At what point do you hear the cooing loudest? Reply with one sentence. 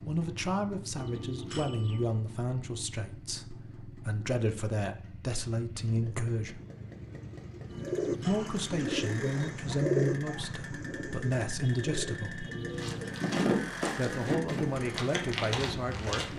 The loudest moment of the cooing is at 10 seconds.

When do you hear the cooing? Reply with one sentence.
You can hear the cooing from 7.8 to 13.2 s.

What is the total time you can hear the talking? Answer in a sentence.
You can hear the talking for 13 seconds altogether.